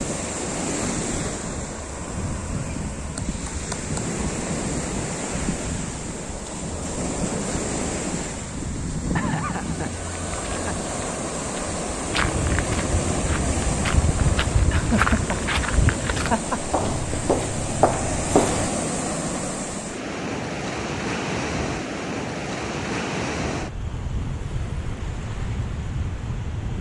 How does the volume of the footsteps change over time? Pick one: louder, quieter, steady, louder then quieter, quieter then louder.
louder.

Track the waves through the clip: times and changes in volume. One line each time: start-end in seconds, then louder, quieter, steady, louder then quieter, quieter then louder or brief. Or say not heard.
0.0-26.7 steady.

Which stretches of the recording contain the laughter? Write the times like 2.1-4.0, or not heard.
9.2-10.9, 14.7-16.6.